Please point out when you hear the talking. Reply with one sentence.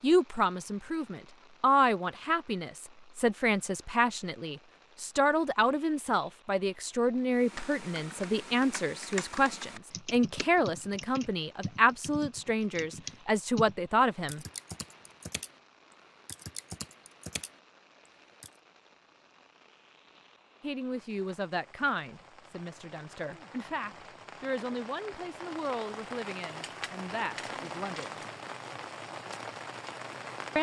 The talking can be heard from 0.0 to 14.4 s and from 20.6 to 28.2 s.